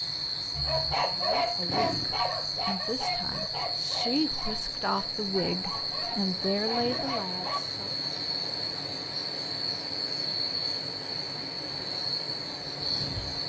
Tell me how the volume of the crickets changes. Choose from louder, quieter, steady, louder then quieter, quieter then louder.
steady.